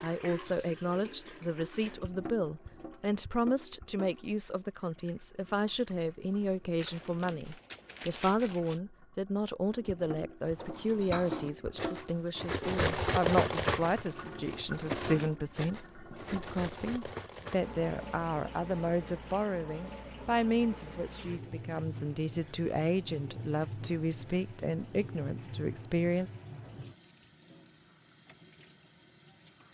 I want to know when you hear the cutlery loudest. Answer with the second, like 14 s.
13 s.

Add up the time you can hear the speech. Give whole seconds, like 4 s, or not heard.
26 s.